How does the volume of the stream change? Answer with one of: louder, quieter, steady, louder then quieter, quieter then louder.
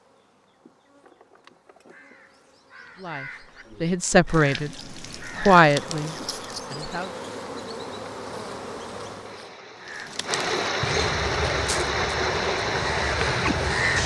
louder.